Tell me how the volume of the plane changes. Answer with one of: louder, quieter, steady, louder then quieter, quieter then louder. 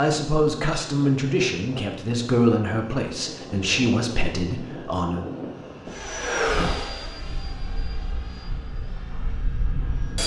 louder then quieter.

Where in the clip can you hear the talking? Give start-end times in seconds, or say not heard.
0.0-5.2.